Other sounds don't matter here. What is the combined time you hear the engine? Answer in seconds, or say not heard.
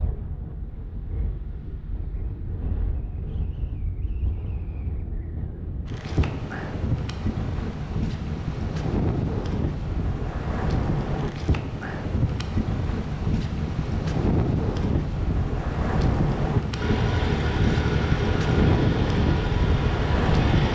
4 s.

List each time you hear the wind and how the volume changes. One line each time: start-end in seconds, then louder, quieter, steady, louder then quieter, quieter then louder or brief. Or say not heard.
0.0-20.6 louder.